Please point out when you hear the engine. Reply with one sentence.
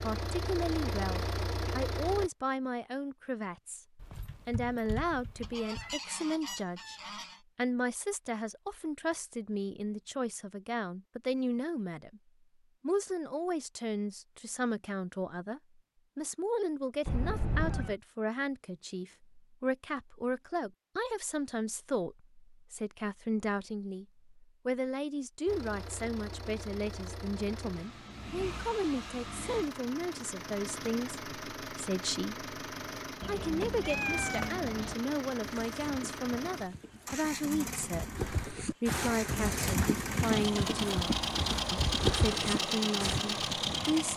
The engine can be heard from 0.0 to 2.3 s and from 25.4 to 44.1 s.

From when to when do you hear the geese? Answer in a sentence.
You can hear the geese from 5.4 to 7.4 s.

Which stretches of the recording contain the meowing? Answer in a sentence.
You can hear the meowing from 4.0 to 6.0 s, from 17.1 to 17.9 s and from 33.2 to 35.0 s.